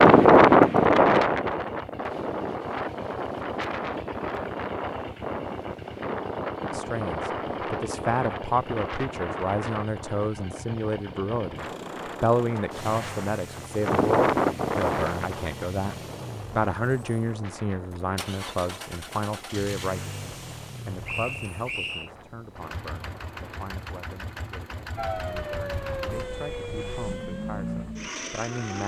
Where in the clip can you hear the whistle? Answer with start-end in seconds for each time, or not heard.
21.1-22.1.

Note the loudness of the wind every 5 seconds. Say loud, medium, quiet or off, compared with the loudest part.
loud, quiet, medium, quiet, quiet, quiet.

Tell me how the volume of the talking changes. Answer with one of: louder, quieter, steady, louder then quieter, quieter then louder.
quieter.